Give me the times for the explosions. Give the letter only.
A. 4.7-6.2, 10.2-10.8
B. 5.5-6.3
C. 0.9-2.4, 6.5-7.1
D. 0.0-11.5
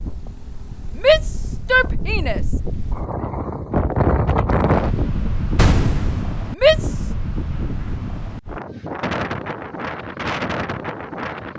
B.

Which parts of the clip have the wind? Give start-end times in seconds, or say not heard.
0.0-11.5.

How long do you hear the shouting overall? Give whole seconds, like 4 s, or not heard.
2 s.